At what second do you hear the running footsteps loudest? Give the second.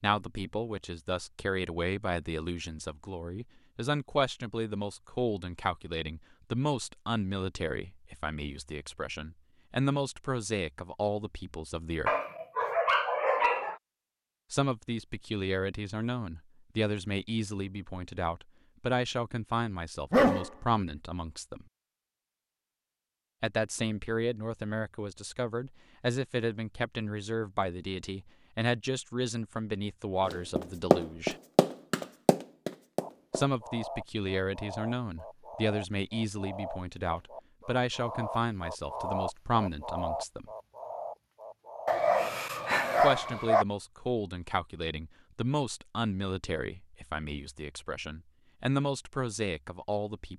31 s.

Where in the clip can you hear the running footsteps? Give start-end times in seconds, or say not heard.
30.2-33.5.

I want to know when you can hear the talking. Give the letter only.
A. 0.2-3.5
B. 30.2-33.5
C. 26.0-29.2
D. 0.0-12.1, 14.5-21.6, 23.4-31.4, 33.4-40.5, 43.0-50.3
D.